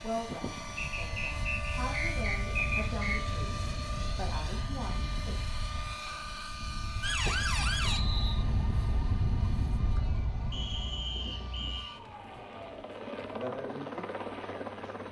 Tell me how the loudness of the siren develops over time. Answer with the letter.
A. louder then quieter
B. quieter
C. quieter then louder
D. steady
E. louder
B.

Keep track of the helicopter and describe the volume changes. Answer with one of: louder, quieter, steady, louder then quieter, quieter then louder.
quieter then louder.